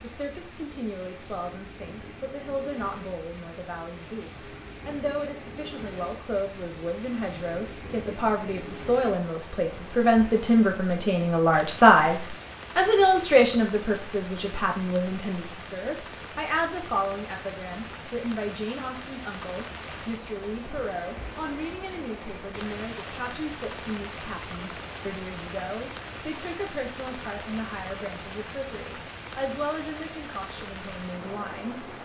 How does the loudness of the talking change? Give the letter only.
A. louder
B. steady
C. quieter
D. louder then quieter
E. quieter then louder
D.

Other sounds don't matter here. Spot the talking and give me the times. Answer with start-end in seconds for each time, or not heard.
0.0-31.9.